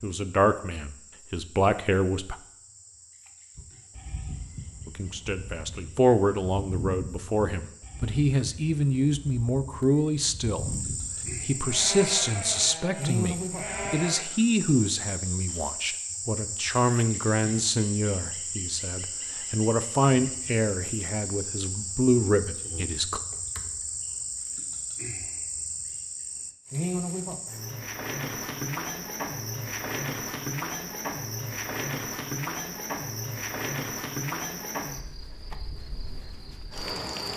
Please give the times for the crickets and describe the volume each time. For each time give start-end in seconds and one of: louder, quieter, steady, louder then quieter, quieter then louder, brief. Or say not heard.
0.0-37.3 louder.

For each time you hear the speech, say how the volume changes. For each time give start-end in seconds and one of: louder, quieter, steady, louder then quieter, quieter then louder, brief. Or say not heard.
0.0-2.4 brief
4.8-23.2 steady.